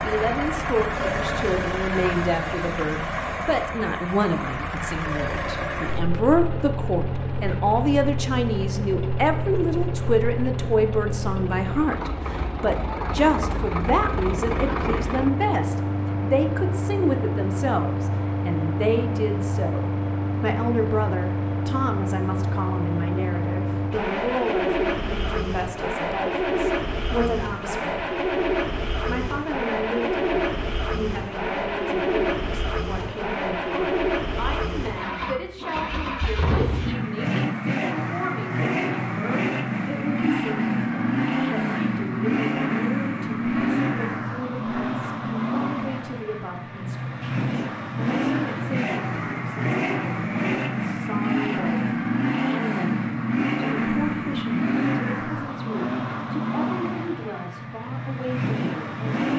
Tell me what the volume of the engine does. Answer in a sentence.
The volume of the engine stays about the same.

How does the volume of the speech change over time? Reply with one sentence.
The volume of the speech goes down.